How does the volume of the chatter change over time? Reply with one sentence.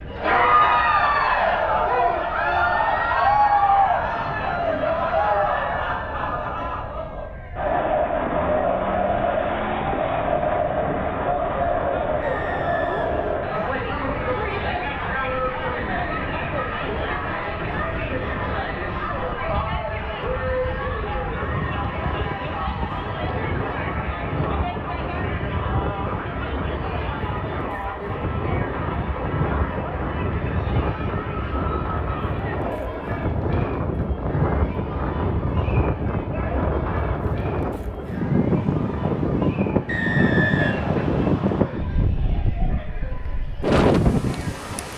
The loudness of the chatter goes down.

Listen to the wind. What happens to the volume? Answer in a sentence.
The loudness of the wind goes up.